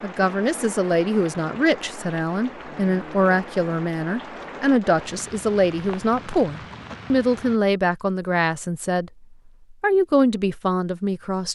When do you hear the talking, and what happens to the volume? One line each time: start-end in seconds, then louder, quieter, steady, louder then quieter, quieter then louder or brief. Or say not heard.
0.0-11.4 steady.